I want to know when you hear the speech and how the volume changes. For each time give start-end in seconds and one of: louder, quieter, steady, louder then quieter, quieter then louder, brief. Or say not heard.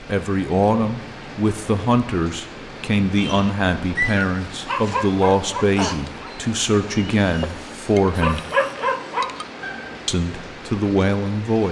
0.0-8.4 steady
10.1-11.6 brief.